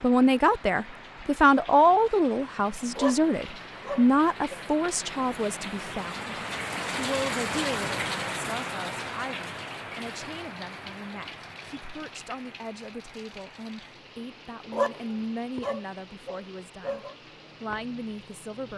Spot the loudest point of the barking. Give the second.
15 s.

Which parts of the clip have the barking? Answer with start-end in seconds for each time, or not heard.
3.0-4.6, 14.7-17.1.